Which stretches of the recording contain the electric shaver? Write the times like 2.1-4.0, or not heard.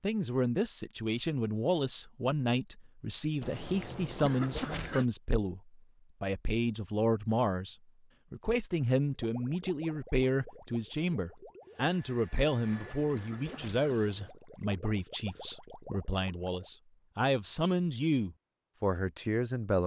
not heard.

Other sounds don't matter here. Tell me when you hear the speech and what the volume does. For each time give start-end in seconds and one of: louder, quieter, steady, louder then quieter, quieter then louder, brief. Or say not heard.
0.0-19.8 steady.